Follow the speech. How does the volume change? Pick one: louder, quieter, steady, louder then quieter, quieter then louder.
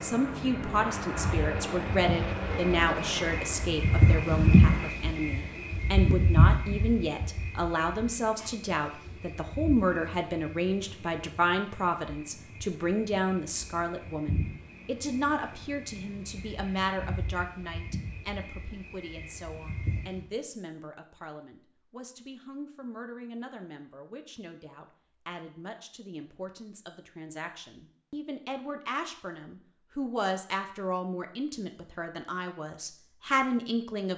quieter then louder.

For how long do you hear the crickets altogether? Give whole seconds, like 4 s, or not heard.
20 s.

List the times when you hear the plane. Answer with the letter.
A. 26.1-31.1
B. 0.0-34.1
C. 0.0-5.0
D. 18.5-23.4
C.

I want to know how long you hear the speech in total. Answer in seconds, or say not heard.
34 s.